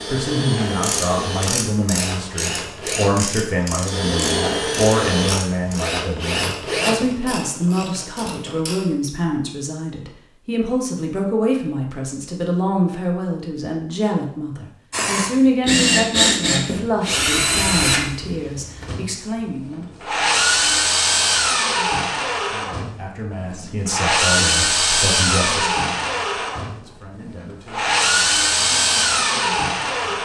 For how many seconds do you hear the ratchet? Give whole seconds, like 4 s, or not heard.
8 s.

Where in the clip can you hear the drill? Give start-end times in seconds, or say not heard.
0.0-7.2, 14.9-30.2.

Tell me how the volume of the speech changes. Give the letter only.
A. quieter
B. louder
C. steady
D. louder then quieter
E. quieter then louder
A.